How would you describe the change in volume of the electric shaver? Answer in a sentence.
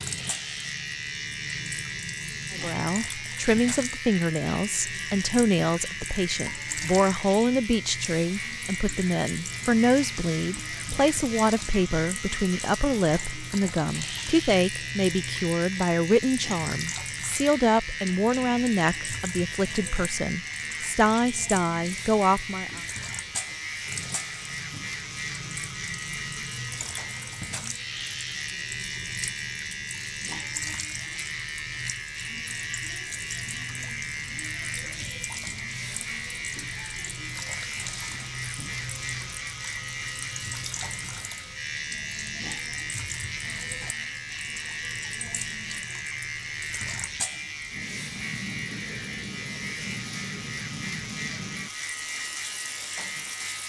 The volume of the electric shaver stays about the same.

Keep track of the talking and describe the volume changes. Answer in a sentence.
The loudness of the talking stays about the same.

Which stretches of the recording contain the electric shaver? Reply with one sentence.
The electric shaver can be heard from 0.0 to 53.6 s.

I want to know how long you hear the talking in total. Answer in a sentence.
The talking can be heard for 20 seconds in total.